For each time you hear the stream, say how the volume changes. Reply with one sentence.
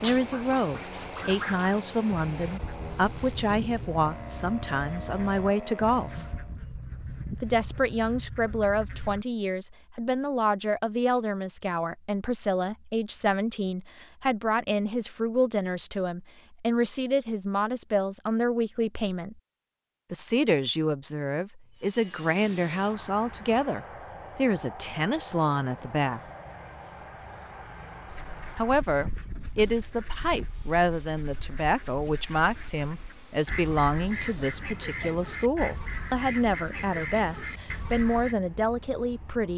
The stream can't be heard in this clip.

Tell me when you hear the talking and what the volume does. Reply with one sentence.
The talking can be heard from 0.0 to 6.2 s, at a steady volume; from 7.3 to 19.4 s, at a steady volume; from 20.1 to 26.2 s, at a steady volume; and from 28.6 to 39.5 s, at a steady volume.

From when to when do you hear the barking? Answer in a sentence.
The barking can't be heard in this clip.